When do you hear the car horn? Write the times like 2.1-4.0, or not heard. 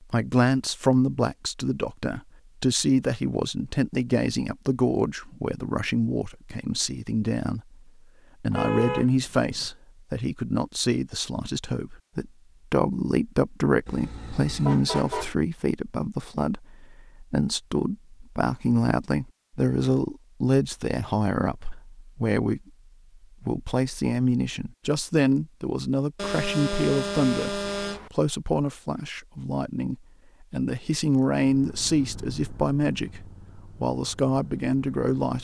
8.5-9.7, 13.8-15.3, 26.1-28.1.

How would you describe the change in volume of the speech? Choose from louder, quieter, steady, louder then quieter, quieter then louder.
steady.